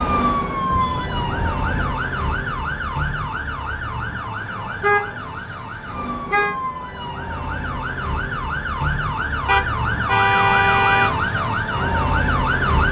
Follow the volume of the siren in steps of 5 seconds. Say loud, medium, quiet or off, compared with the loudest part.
loud, medium, loud.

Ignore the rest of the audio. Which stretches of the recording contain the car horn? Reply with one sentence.
You can hear the car horn from 0.7 to 1.9 s, from 4.4 to 6.5 s and from 9.4 to 11.1 s.